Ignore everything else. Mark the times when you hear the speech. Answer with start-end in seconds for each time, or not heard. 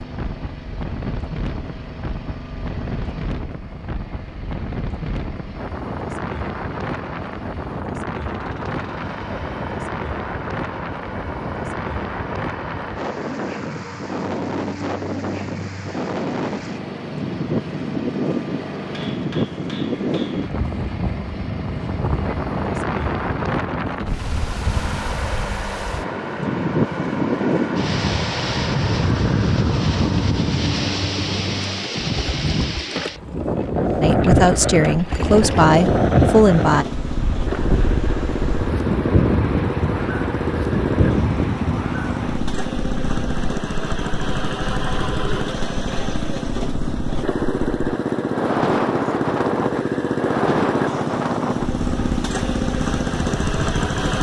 34.0-36.9.